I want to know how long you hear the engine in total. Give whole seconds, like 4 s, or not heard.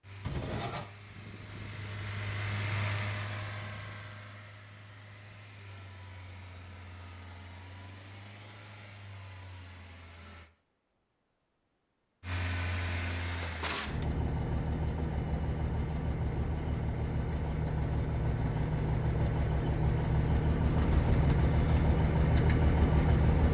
22 s.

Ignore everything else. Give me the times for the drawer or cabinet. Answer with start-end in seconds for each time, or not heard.
0.2-0.8, 13.3-14.1, 20.6-21.8.